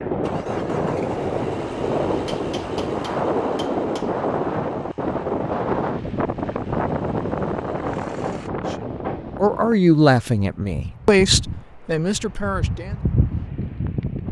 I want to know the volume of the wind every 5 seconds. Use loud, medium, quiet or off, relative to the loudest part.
loud, loud, medium.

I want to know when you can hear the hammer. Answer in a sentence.
The hammer can be heard from 2.1 to 4.1 s and from 7.8 to 9.4 s.